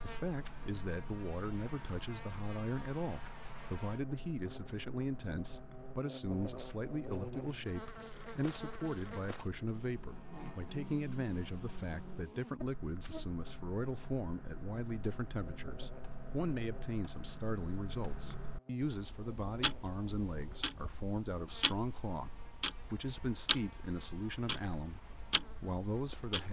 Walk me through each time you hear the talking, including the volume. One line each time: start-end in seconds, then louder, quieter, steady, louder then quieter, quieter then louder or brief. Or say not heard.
0.0-26.4 steady.